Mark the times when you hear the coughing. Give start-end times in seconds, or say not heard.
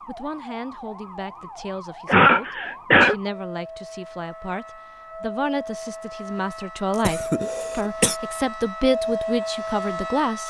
2.0-3.1, 6.9-8.2.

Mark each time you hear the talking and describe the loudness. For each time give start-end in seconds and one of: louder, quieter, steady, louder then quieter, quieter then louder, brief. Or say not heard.
0.1-10.4 louder.